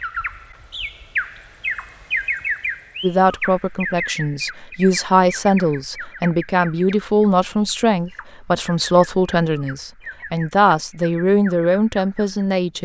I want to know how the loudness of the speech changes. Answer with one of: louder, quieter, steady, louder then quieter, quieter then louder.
steady.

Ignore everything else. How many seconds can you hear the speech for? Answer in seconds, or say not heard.
10 s.